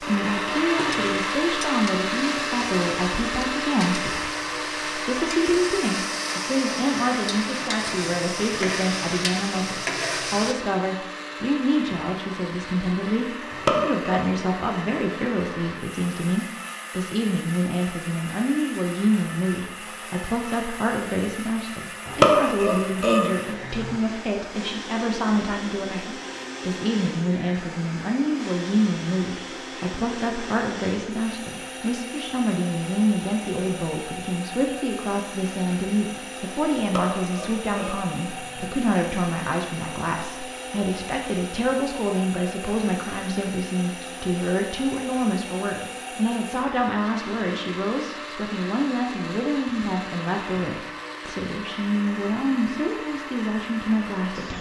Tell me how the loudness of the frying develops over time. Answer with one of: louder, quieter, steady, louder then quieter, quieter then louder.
louder.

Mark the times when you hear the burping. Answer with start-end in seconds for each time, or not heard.
13.5-14.3, 22.1-23.9, 36.8-38.7.